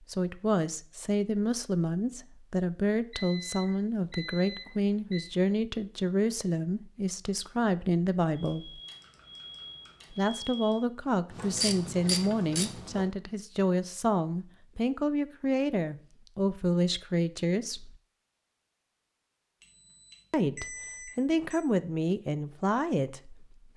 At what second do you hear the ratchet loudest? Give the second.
12 s.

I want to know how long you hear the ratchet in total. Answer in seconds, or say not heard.
2 s.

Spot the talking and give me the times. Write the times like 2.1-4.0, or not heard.
0.0-8.8, 10.1-17.9, 20.3-23.7.